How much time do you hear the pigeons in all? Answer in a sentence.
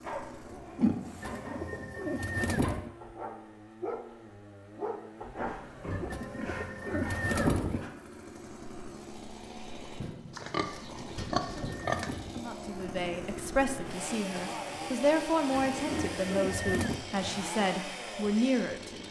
You can hear the pigeons for 7 seconds altogether.